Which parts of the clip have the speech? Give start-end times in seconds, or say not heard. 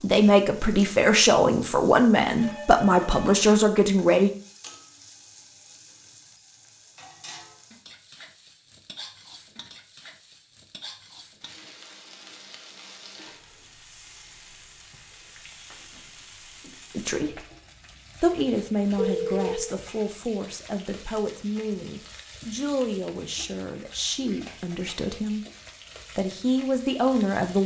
0.0-4.3, 16.9-17.4, 18.2-25.4, 26.1-27.6.